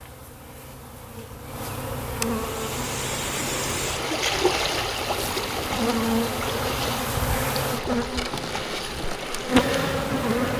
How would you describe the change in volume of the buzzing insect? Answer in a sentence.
The volume of the buzzing insect goes up.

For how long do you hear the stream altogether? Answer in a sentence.
You can hear the stream for 8 seconds altogether.